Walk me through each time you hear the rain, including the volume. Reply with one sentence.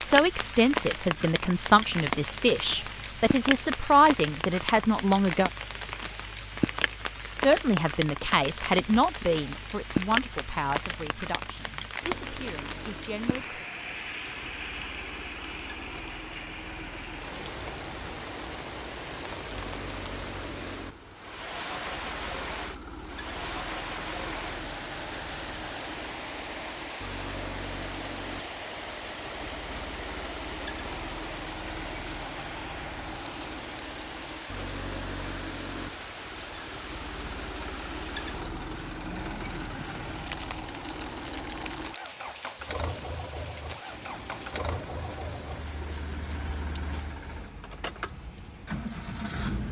The rain can be heard from 0.0 to 49.6 s, getting quieter.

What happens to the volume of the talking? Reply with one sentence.
The volume of the talking goes down.